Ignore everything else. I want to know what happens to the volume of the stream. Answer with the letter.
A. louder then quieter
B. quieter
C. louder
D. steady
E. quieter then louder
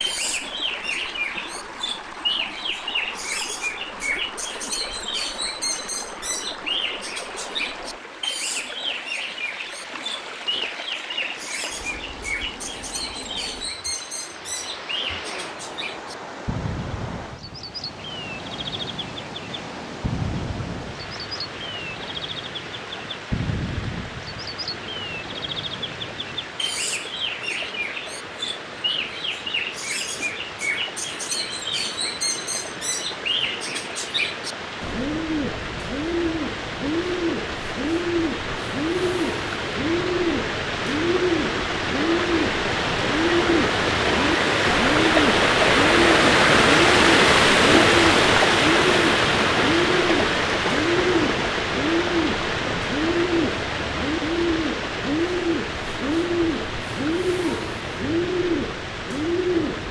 C.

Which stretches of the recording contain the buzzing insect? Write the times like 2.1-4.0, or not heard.
not heard.